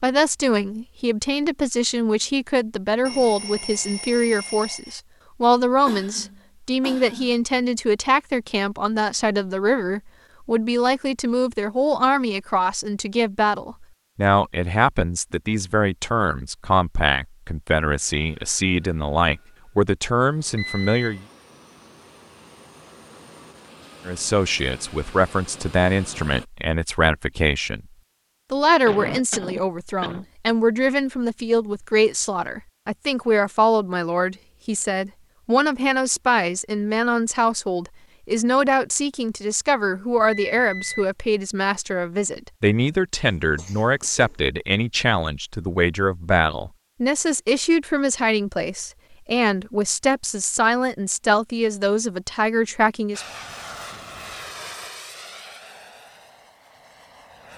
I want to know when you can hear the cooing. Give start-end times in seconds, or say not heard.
not heard.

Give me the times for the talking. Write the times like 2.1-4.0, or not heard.
0.0-21.2, 24.1-27.8, 28.5-53.2.